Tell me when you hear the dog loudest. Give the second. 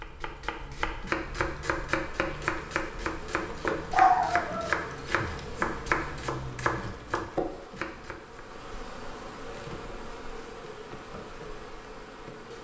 4 s.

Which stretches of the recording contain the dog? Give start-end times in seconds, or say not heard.
3.9-5.5.